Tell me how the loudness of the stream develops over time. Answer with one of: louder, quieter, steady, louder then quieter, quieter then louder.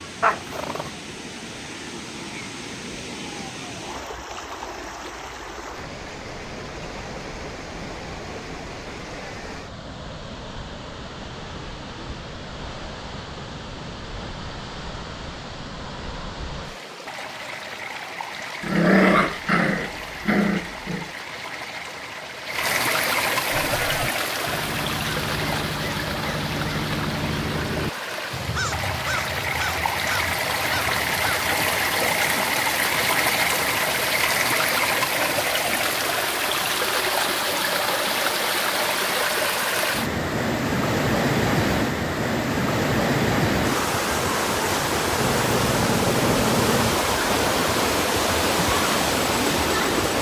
louder.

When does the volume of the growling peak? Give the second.
19 s.